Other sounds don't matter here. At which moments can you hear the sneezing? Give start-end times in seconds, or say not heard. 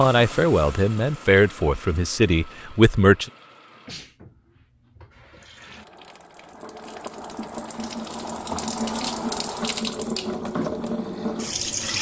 3.8-4.2.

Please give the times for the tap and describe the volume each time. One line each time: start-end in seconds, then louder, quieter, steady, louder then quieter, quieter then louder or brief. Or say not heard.
0.0-11.9 quieter then louder.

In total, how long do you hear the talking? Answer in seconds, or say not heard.
3 s.